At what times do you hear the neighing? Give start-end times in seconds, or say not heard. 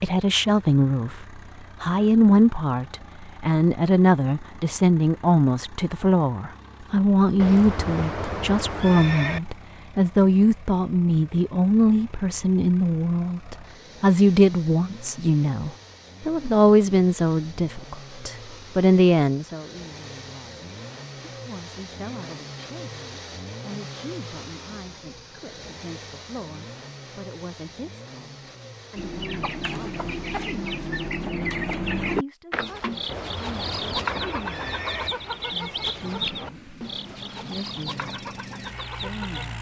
7.3-9.4, 33.0-35.1.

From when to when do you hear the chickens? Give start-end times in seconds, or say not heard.
28.9-39.5.